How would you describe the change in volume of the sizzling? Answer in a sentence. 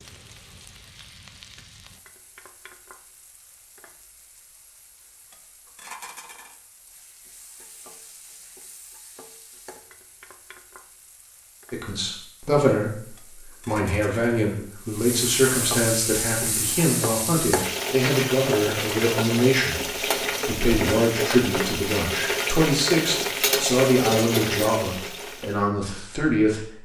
The volume of the sizzling goes up.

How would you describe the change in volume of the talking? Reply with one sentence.
The volume of the talking stays about the same.